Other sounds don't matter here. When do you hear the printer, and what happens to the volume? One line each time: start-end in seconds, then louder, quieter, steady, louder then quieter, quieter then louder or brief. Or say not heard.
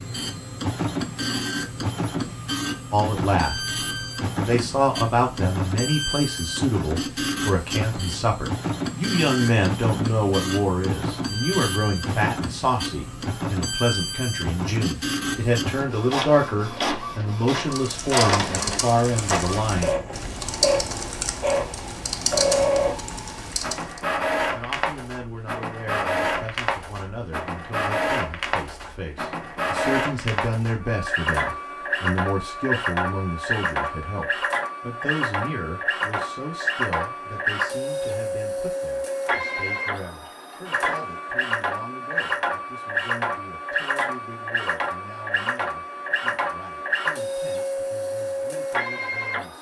0.0-49.5 steady.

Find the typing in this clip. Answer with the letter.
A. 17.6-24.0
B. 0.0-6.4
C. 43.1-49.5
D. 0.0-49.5
A.